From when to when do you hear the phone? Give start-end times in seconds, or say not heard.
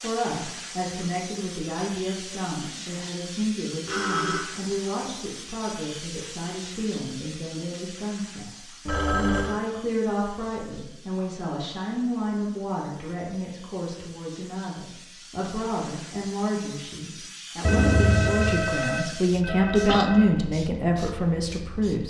3.9-4.5, 8.8-9.6, 17.6-20.3.